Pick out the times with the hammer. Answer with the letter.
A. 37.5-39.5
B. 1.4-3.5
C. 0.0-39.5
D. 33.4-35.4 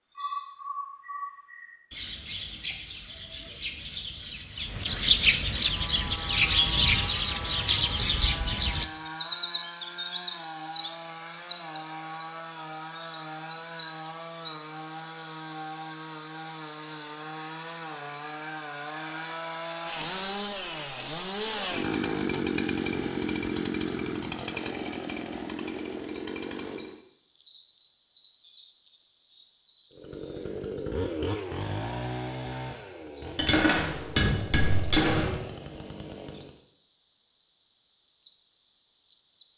D.